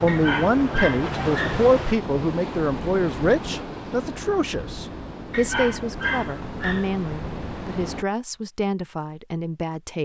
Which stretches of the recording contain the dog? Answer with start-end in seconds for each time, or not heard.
0.1-1.6, 5.3-6.9.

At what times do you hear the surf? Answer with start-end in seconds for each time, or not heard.
0.0-8.1.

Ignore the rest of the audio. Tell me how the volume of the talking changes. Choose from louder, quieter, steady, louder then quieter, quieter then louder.
quieter.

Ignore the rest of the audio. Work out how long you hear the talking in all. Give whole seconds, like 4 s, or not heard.
10 s.